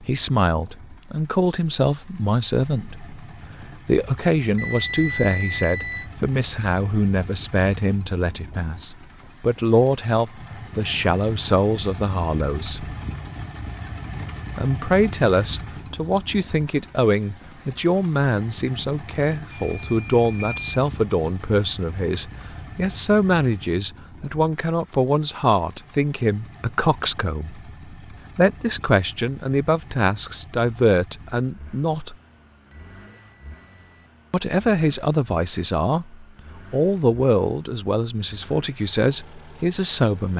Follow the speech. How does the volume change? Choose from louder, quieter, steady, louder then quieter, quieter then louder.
steady.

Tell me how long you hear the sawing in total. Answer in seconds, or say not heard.
not heard.